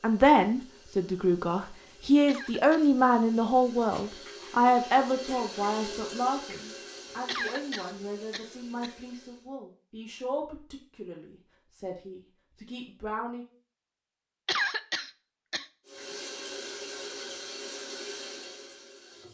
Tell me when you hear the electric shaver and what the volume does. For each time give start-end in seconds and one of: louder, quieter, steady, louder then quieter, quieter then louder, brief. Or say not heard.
not heard.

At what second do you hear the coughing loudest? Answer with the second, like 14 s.
15 s.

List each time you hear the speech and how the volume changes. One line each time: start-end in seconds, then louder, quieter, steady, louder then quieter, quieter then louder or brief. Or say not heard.
0.0-13.4 quieter.